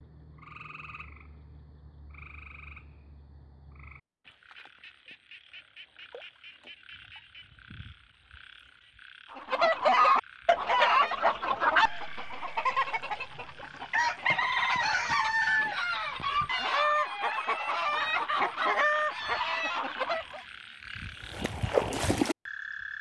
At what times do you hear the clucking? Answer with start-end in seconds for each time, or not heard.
9.3-20.4.